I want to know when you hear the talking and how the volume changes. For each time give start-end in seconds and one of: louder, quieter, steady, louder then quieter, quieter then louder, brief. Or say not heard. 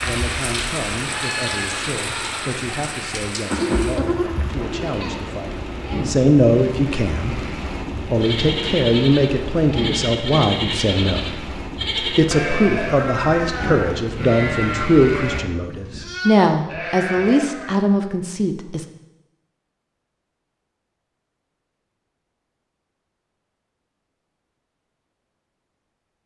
0.0-18.9 louder.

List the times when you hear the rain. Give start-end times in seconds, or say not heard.
0.0-15.4.